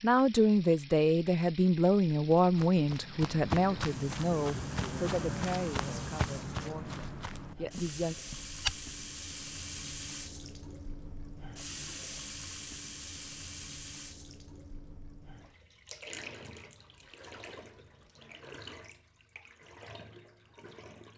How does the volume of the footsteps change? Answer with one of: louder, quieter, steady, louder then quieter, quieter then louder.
quieter.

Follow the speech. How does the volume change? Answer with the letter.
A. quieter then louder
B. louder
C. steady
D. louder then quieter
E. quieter
E.